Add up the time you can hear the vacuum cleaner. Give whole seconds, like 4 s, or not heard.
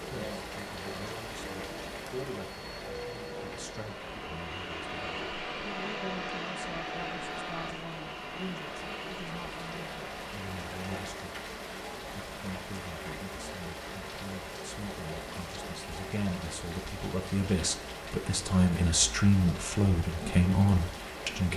11 s.